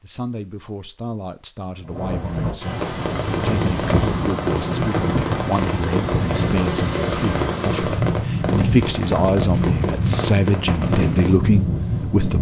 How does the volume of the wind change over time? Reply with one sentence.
The loudness of the wind stays about the same.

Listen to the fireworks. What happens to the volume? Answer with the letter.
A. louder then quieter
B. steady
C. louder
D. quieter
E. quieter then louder
B.